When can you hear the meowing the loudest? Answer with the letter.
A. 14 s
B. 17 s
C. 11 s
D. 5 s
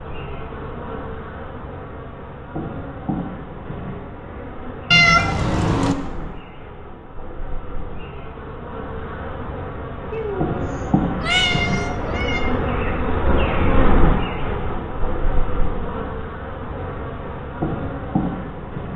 D.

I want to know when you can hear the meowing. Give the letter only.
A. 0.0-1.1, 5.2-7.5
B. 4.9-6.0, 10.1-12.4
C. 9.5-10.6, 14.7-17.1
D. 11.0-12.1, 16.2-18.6
B.